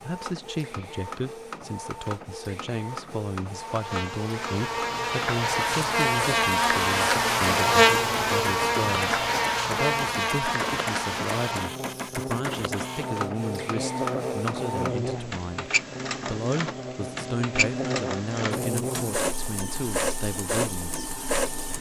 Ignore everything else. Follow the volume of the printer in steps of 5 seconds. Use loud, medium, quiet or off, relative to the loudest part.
medium, medium, loud, loud, loud.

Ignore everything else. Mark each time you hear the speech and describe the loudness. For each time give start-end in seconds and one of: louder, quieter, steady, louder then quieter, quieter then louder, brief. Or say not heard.
0.0-21.1 steady.